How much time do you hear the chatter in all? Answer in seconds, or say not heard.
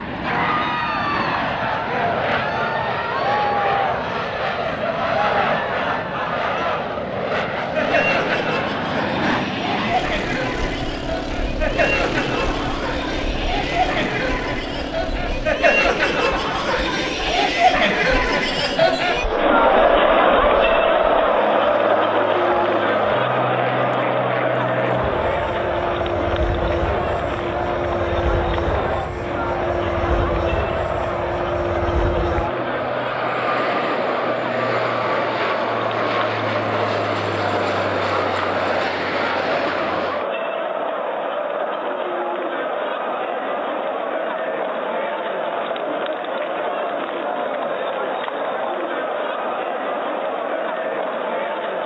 52 s.